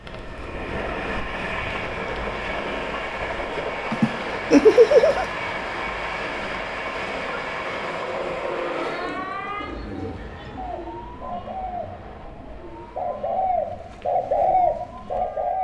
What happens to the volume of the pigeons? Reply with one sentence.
The volume of the pigeons goes up.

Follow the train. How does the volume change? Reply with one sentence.
The loudness of the train goes down.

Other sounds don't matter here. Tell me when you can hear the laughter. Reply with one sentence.
You can hear the laughter from 3.9 to 5.2 s.